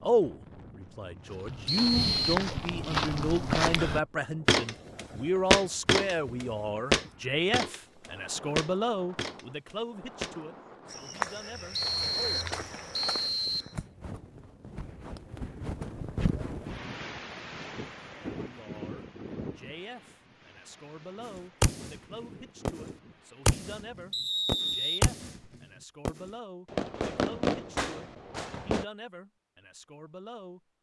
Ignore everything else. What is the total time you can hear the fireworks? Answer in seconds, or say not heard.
6 s.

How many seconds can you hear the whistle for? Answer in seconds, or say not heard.
4 s.